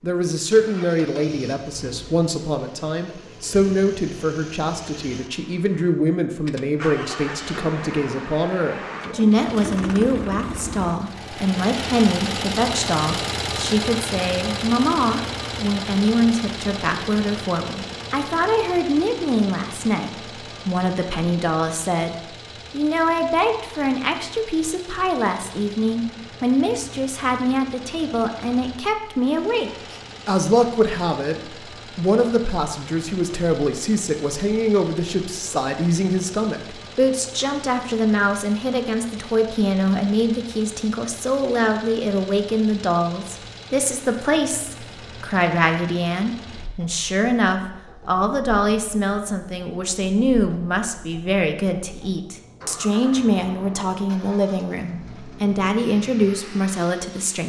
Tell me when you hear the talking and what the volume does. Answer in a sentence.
The talking can be heard from 0.0 to 57.4 s, at a steady volume.